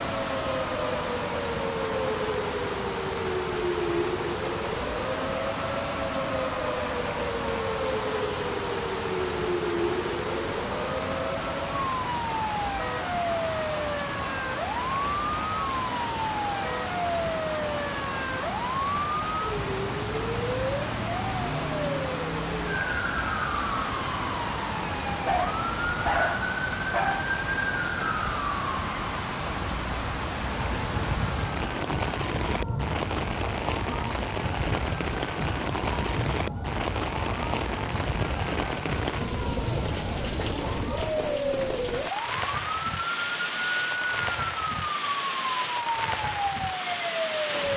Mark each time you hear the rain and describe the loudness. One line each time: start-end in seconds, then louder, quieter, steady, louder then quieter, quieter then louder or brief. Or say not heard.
0.0-47.7 steady.